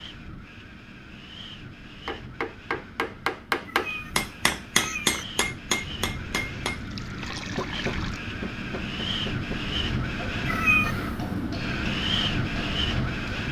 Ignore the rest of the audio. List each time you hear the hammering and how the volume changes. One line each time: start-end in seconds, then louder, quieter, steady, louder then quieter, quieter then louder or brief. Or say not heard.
2.0-13.4 quieter.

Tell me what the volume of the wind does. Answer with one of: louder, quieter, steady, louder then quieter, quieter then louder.
louder.